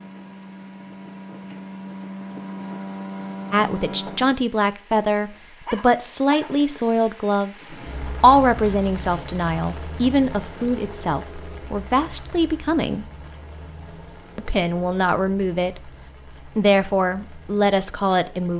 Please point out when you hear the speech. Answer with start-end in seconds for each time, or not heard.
3.5-13.1, 14.3-15.9, 16.6-18.5.